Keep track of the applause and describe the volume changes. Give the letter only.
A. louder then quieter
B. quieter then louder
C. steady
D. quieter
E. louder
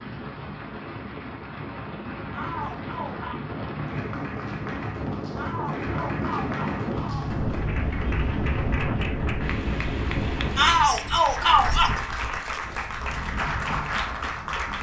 E.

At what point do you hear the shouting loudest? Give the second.
11 s.